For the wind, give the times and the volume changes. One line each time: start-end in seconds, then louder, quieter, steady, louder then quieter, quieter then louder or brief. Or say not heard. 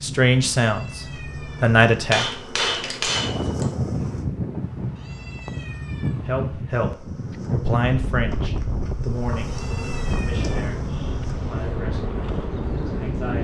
3.1-13.3 steady.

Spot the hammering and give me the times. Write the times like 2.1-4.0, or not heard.
2.1-3.7.